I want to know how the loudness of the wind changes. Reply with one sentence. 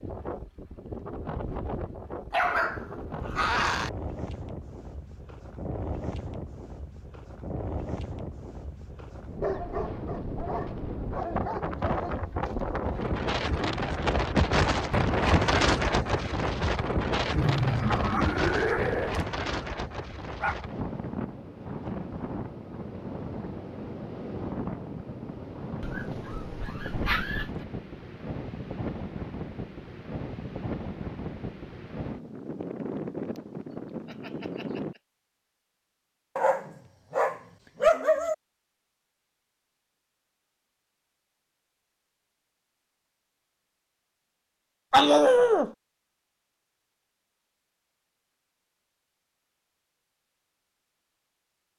The loudness of the wind goes up, then down.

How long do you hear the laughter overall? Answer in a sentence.
The laughter can be heard for 3 seconds in total.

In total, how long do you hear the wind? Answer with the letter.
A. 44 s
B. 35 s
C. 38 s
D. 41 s
B.